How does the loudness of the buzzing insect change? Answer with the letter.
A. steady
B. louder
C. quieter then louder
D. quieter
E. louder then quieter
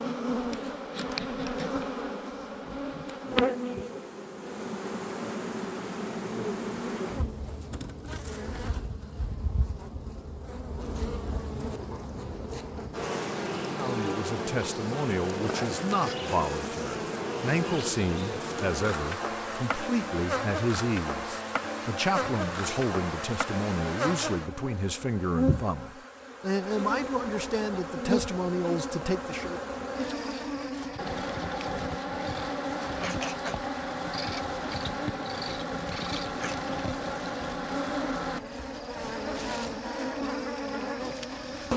A.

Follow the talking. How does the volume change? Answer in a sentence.
The loudness of the talking stays about the same.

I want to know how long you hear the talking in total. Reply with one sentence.
You can hear the talking for 16 seconds altogether.